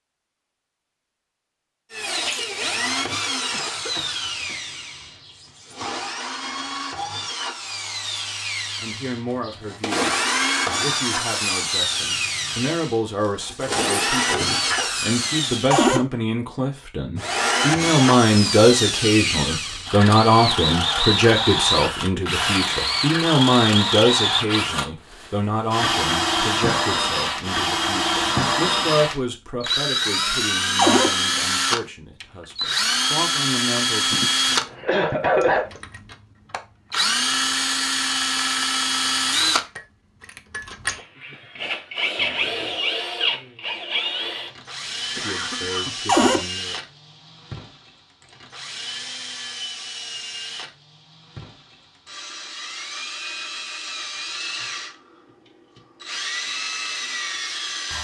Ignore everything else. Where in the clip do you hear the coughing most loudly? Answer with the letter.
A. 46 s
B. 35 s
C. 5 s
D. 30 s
B.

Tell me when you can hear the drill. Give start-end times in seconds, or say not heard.
1.9-15.8, 17.1-57.9.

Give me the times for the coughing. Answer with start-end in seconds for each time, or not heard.
3.5-4.7, 34.1-35.7, 45.1-46.0.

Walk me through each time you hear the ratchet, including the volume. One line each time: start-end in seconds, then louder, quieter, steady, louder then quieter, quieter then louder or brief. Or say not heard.
not heard.